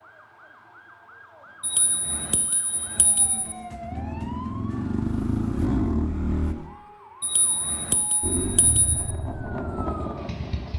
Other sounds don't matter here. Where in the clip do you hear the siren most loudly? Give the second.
10 s.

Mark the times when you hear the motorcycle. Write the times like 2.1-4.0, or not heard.
3.9-6.5, 8.2-10.7.